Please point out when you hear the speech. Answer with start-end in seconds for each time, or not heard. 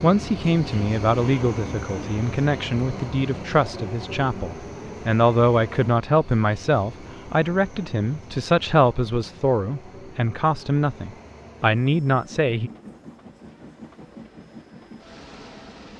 0.0-12.7.